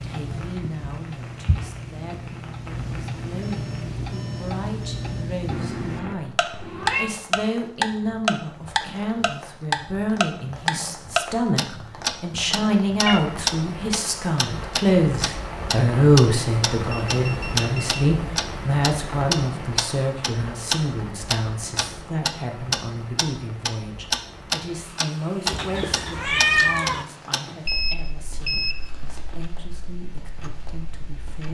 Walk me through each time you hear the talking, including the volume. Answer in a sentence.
You can hear the talking from 0.0 to 31.4 s, getting louder then quieter.